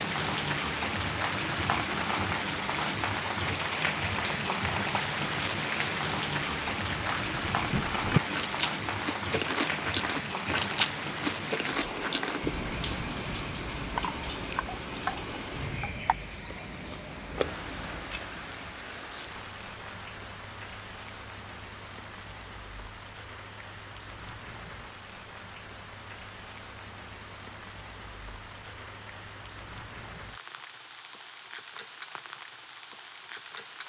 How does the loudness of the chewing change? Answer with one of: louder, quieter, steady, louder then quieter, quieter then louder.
quieter.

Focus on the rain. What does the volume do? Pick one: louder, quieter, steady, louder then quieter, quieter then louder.
quieter.